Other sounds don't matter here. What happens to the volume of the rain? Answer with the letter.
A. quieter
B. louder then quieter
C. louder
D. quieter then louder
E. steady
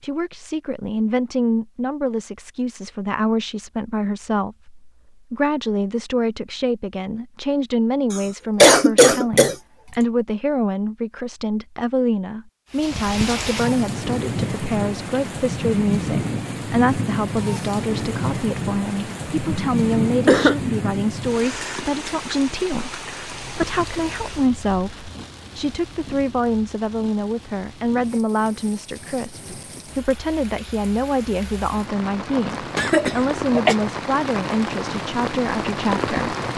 D.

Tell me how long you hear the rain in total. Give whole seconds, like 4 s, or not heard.
24 s.